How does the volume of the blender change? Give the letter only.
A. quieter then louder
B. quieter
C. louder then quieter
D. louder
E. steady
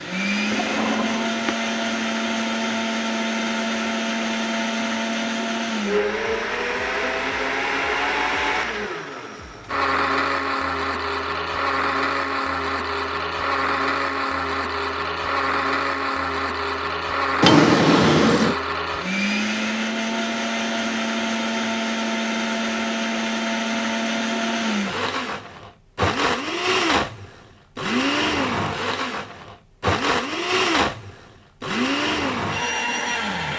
E.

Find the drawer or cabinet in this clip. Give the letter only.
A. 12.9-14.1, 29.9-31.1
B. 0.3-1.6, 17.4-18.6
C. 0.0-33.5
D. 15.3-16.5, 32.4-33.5
B.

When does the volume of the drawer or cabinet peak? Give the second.
18 s.